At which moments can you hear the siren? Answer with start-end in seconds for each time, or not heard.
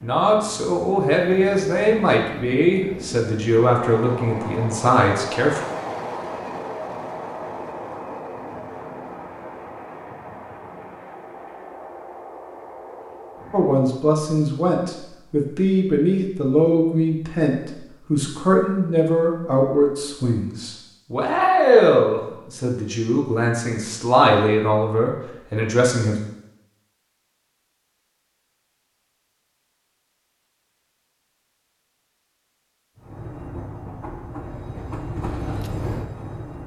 not heard.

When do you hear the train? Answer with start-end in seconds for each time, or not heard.
0.0-13.8, 33.0-36.6.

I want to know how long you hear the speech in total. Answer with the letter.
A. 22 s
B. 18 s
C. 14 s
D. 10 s
B.